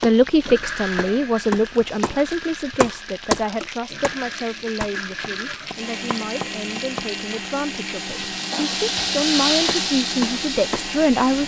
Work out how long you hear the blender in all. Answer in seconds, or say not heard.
11 s.